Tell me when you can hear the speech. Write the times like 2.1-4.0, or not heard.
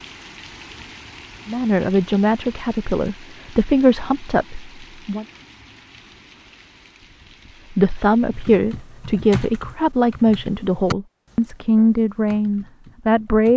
1.4-5.2, 7.7-13.5.